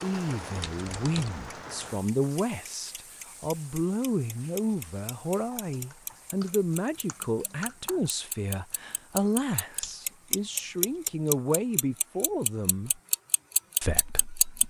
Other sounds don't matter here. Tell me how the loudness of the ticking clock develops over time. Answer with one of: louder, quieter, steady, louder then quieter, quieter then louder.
louder.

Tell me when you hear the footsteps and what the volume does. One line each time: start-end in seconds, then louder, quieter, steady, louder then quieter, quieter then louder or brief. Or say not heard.
not heard.